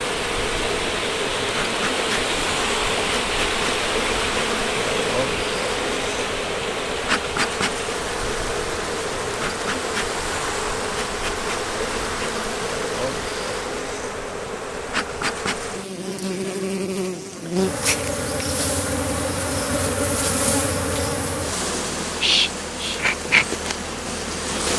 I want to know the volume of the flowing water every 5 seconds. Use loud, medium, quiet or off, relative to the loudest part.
loud, medium, medium, off, off.